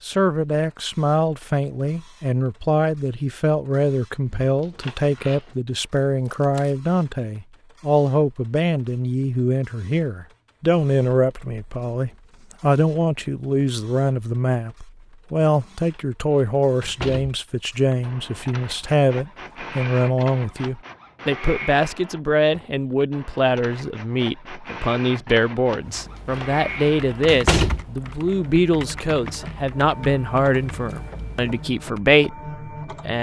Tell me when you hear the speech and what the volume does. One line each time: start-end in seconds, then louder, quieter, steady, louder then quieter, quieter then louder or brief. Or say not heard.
0.0-33.1 steady.